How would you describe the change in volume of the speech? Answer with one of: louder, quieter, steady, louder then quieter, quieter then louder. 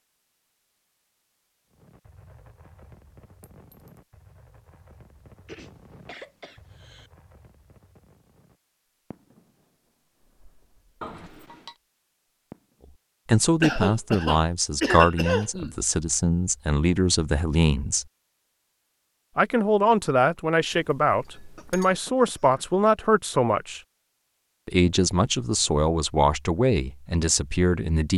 steady.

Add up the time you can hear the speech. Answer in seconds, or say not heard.
13 s.